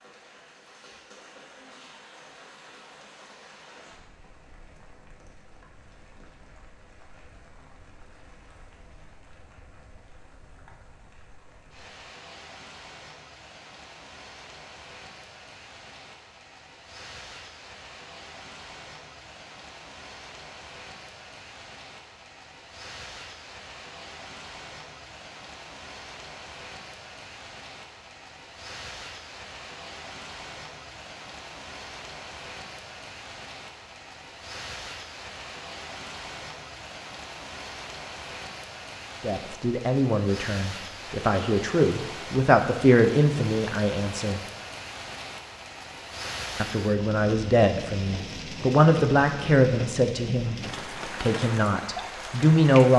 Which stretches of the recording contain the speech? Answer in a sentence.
You can hear the speech from 39.2 to 44.4 s, from 46.5 to 50.6 s and from 51.2 to 52.9 s.